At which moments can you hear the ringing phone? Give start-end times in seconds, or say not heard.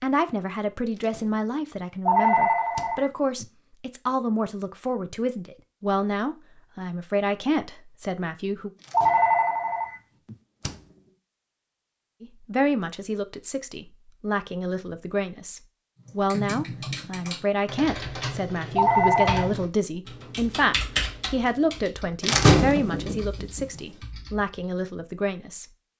2.0-3.5, 8.9-10.3, 18.8-19.5.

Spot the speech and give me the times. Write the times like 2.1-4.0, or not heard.
0.0-8.7, 12.2-25.6.